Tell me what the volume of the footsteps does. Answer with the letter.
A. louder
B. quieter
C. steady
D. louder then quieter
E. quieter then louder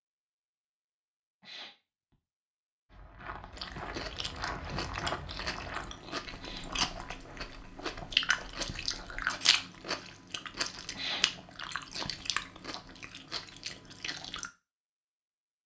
D.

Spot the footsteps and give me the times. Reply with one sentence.
The footsteps can be heard from 2.9 to 9.2 s.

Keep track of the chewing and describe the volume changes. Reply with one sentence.
The volume of the chewing goes up, then down.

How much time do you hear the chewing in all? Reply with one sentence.
The chewing can be heard for 11 seconds in total.